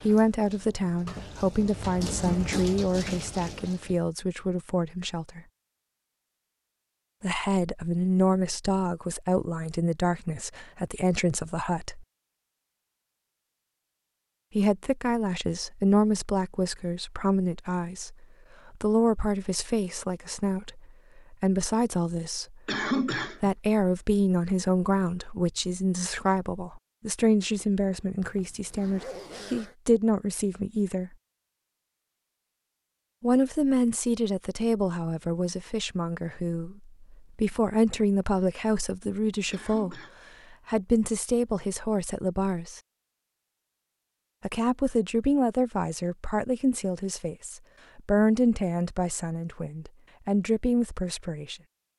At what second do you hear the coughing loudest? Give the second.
23 s.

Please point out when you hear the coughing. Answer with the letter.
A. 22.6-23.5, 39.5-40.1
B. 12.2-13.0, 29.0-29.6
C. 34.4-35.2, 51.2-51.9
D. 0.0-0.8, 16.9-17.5
A.